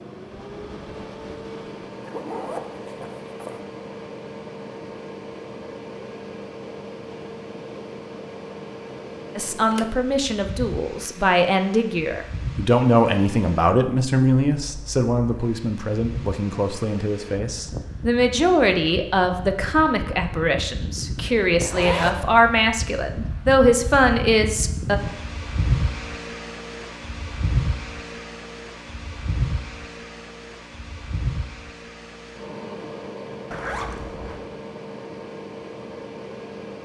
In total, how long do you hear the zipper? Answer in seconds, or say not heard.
3 s.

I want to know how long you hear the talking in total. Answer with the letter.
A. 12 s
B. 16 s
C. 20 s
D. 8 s
B.